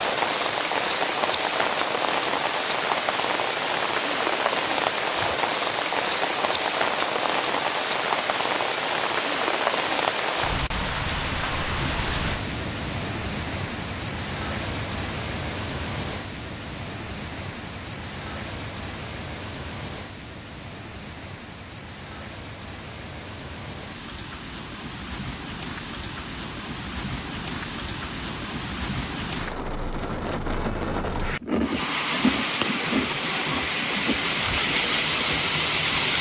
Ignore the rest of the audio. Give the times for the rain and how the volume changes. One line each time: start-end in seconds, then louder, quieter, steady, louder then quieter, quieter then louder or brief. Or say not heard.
0.0-36.1 quieter then louder.